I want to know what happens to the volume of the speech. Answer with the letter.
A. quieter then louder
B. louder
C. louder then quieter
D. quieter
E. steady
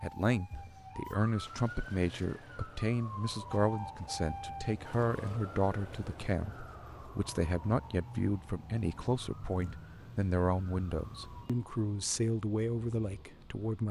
E.